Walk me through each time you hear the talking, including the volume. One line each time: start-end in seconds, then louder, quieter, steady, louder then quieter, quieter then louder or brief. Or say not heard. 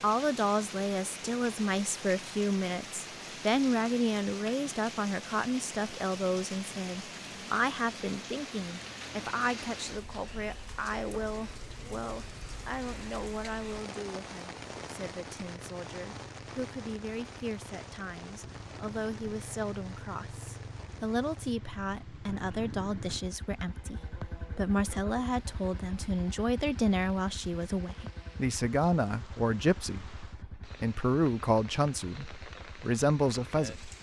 0.0-33.9 quieter then louder.